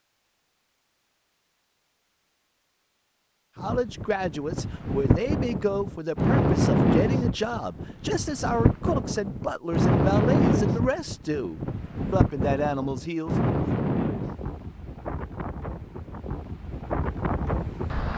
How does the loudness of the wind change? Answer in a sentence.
The loudness of the wind goes down.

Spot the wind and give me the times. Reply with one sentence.
You can hear the wind from 3.5 to 18.1 s.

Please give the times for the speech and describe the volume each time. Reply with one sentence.
You can hear the speech from 3.5 to 13.3 s, at a steady volume.